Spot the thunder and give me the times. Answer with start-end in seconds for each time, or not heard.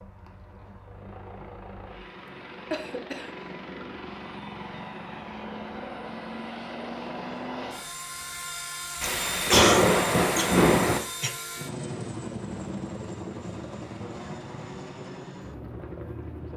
9.0-11.0.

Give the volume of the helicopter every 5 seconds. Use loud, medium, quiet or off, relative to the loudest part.
medium, loud, loud, loud.